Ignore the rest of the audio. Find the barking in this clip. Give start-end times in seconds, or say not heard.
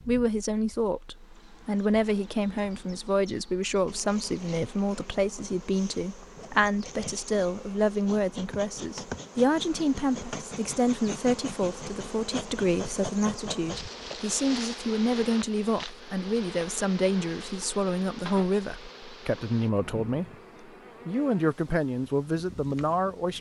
not heard.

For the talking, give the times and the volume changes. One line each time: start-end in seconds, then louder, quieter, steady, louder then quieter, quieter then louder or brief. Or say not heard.
0.1-20.2 steady
21.1-23.3 brief.